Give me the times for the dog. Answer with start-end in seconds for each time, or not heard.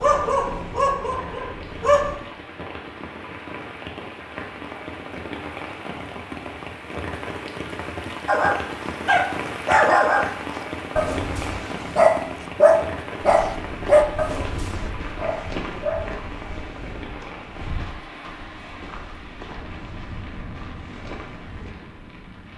0.0-2.1, 8.2-16.1.